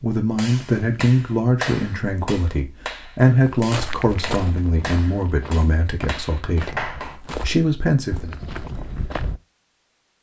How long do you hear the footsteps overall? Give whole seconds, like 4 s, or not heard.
6 s.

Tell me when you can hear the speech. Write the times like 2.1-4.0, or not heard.
0.0-8.3.